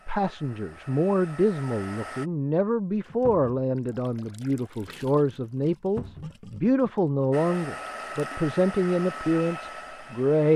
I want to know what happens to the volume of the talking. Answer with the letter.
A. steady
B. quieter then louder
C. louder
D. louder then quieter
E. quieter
A.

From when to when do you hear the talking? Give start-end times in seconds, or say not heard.
0.1-10.5.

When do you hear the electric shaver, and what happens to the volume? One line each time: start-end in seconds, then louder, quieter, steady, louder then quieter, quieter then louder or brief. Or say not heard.
not heard.